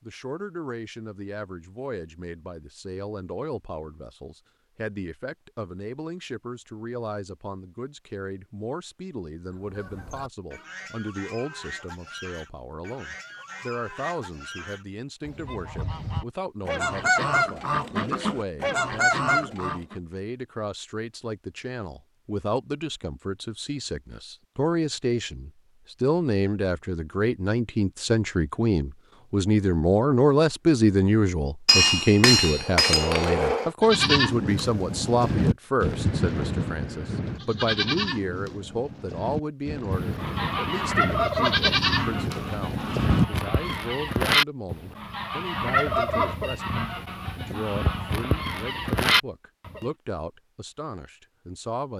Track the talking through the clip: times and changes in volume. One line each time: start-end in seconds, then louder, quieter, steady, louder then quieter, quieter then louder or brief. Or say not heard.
0.0-51.9 louder then quieter.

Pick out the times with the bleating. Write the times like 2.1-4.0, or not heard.
33.8-43.8.